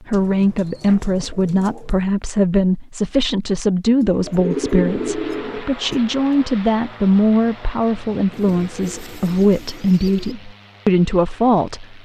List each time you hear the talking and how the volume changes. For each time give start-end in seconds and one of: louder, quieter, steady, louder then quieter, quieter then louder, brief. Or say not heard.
0.0-12.0 steady.